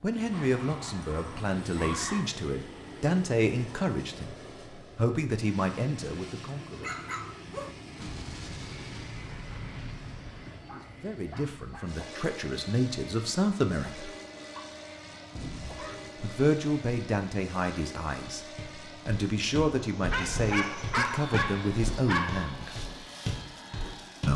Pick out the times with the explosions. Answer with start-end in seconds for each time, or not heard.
8.0-10.7, 15.3-16.2.